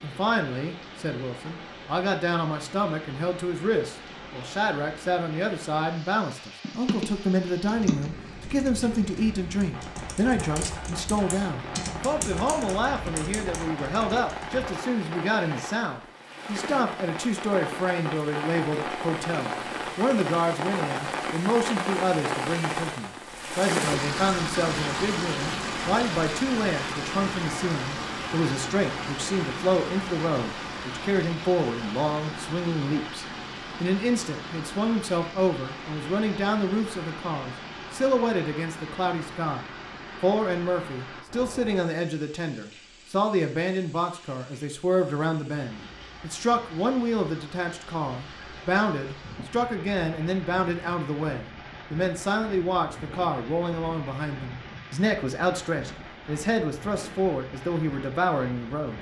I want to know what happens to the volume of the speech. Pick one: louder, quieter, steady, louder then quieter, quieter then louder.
steady.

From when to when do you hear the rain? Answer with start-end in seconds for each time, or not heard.
0.0-58.9.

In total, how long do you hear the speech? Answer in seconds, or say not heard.
59 s.